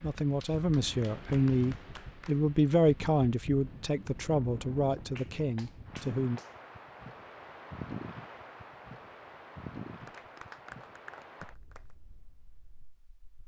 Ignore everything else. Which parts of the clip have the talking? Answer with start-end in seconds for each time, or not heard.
0.0-6.4.